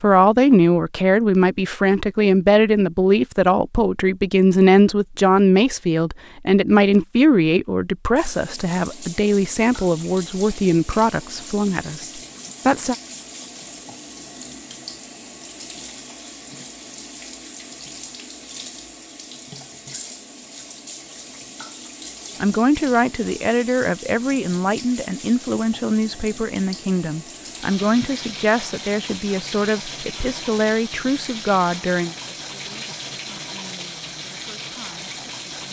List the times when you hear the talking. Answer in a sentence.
You can hear the talking from 0.0 to 12.9 s and from 22.4 to 35.6 s.